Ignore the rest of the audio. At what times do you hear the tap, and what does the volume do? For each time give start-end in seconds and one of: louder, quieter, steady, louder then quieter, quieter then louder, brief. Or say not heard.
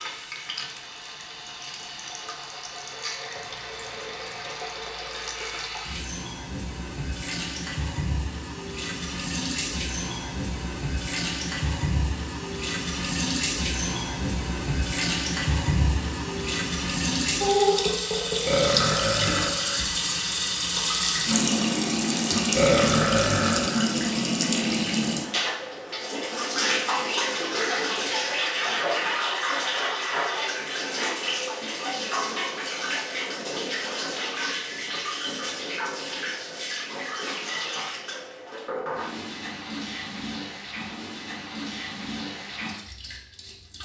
0.0-43.7 louder then quieter.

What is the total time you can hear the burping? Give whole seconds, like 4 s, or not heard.
3 s.